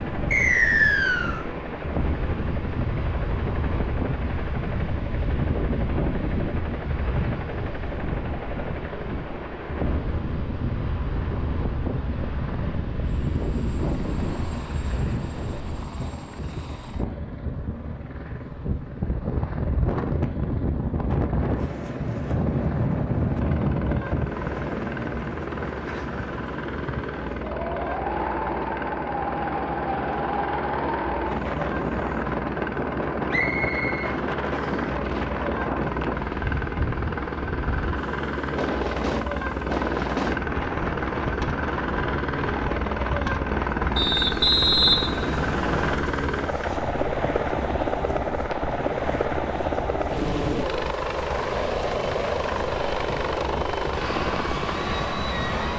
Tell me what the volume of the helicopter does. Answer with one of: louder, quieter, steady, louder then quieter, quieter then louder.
louder.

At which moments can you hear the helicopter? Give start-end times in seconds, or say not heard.
0.0-55.7.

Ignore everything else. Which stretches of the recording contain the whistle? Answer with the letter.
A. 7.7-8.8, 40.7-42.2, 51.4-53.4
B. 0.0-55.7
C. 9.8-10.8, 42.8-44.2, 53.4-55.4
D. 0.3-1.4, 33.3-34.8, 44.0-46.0
D.